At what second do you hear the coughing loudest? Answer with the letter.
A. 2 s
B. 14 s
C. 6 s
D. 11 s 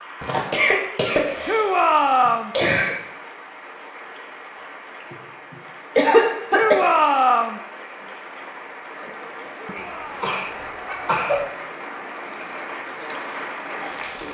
C.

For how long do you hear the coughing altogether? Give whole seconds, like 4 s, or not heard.
6 s.